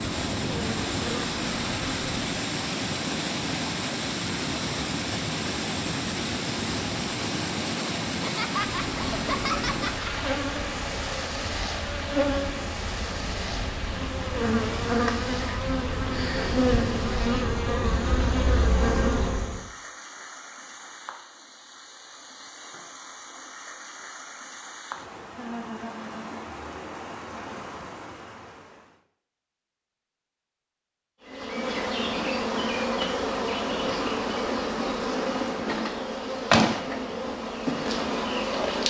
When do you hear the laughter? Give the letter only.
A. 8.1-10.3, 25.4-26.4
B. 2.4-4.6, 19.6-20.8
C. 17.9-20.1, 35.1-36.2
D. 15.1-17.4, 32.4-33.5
A.